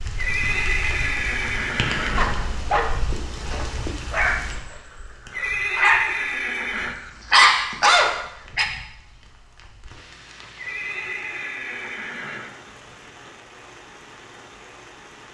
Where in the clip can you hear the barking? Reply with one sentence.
The barking can be heard from 2.1 to 8.7 s.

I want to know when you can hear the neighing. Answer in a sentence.
The neighing can be heard from 0.1 to 2.6 s, from 5.3 to 7.0 s and from 10.6 to 12.6 s.